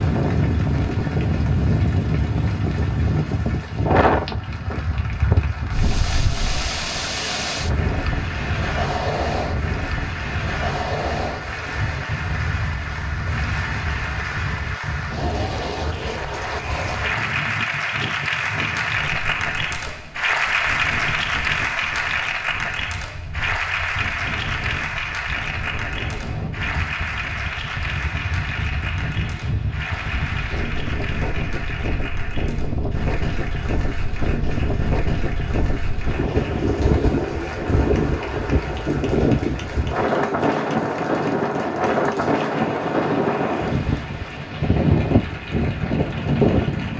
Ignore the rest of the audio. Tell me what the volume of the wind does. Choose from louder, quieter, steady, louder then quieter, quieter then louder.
quieter then louder.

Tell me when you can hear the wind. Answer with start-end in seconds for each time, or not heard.
0.0-46.9.